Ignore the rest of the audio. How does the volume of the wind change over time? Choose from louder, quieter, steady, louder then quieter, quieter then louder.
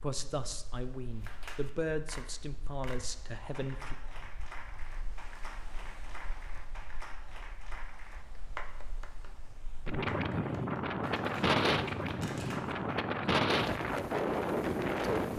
louder.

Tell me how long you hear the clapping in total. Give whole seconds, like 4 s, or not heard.
12 s.